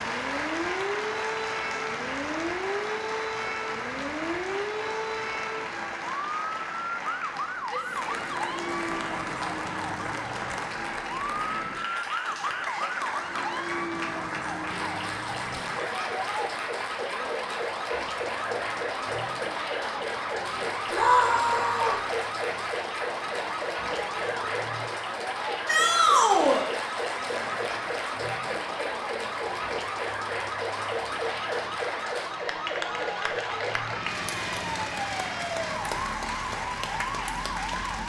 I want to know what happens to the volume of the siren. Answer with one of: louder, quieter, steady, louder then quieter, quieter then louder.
steady.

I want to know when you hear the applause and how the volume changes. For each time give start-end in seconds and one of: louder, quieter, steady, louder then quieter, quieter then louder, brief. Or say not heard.
0.0-38.0 steady.